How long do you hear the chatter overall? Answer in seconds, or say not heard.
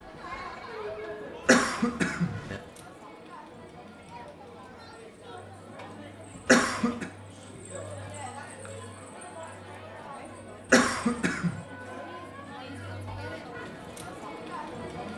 15 s.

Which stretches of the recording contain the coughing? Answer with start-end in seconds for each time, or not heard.
1.4-2.6, 6.5-7.0, 10.7-11.6.